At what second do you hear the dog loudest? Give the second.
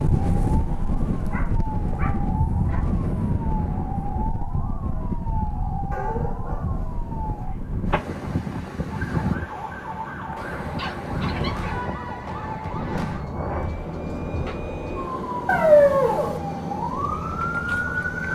16 s.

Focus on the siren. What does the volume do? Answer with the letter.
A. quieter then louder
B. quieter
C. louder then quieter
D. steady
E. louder
E.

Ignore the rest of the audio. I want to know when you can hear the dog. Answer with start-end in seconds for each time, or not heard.
1.3-3.0, 5.9-7.5, 10.4-11.8, 15.4-16.4.